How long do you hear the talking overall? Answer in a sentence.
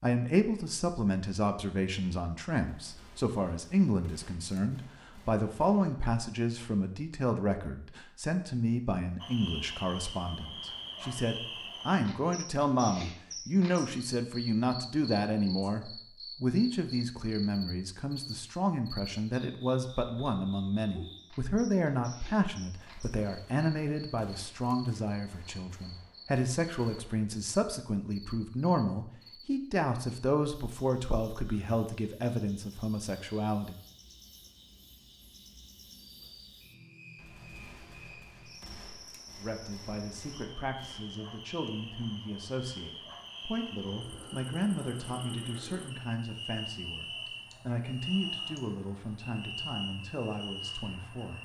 The talking can be heard for 46 seconds in total.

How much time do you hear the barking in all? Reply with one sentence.
You can't hear the barking here.